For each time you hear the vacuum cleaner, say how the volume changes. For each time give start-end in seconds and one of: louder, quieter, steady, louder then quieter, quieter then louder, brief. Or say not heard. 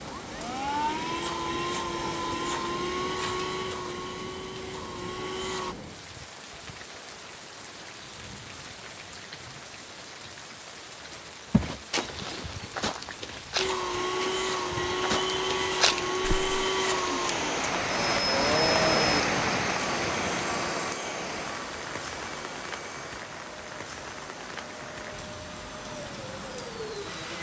0.0-5.8 quieter
13.6-27.3 quieter.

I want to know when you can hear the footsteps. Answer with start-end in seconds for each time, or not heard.
11.5-16.6.